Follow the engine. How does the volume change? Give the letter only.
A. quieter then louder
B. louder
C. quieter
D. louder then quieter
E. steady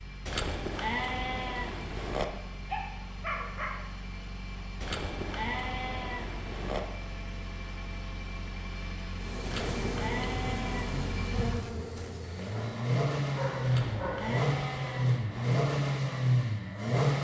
B.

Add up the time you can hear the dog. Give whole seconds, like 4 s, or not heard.
2 s.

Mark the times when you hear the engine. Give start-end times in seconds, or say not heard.
0.0-17.1.